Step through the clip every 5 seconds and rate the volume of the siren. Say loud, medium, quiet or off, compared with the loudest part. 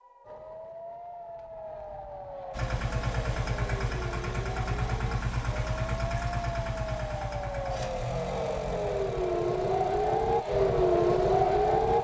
quiet, medium, loud.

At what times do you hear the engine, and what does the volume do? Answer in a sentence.
The engine can be heard from 2.5 to 11.9 s, getting quieter.